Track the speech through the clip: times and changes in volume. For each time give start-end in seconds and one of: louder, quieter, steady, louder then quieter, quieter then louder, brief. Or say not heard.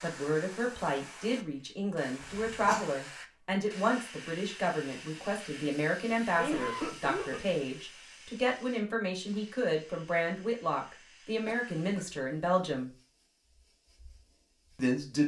0.0-12.9 steady
14.8-15.2 brief.